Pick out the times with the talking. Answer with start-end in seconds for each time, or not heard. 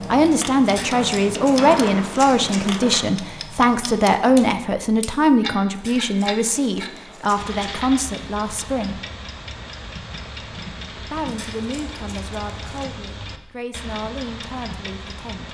0.1-9.0, 11.1-15.4.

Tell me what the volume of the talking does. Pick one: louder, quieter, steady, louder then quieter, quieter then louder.
quieter.